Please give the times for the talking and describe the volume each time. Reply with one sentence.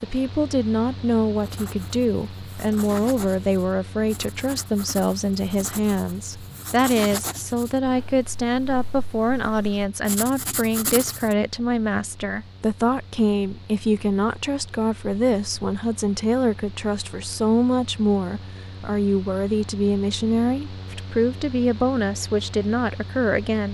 You can hear the talking from 0.0 to 23.7 s, at a steady volume.